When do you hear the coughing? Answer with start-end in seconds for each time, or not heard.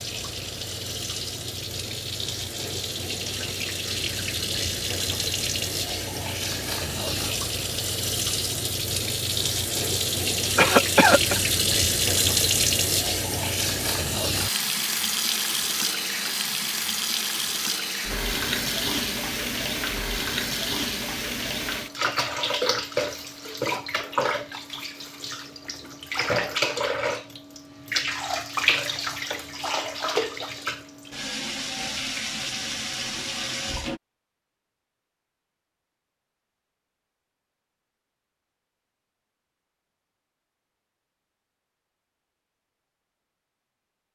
10.6-11.4.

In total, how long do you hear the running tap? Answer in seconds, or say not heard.
34 s.